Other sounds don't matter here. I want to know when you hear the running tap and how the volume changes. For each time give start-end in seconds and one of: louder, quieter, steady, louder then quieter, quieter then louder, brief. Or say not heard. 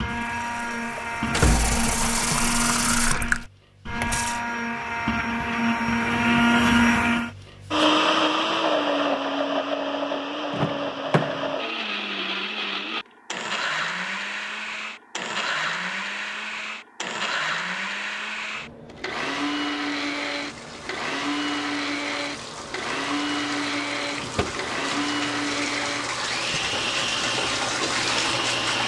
0.2-4.4 louder then quieter
19.9-28.8 louder.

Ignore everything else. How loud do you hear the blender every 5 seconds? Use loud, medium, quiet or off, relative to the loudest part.
medium, loud, medium, medium, medium, medium.